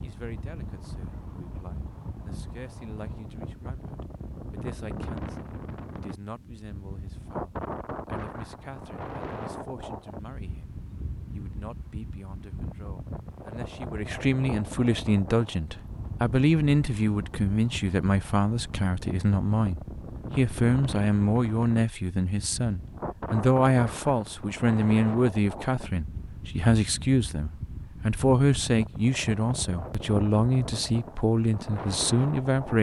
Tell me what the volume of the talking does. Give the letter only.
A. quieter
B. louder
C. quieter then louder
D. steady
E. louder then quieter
B.